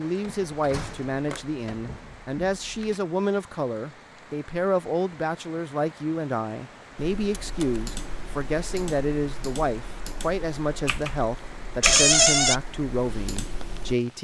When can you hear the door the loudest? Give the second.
12 s.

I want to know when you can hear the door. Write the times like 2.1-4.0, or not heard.
0.2-3.0, 7.4-7.8, 11.8-12.6.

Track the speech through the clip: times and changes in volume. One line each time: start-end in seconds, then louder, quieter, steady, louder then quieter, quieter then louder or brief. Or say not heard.
0.0-14.1 steady.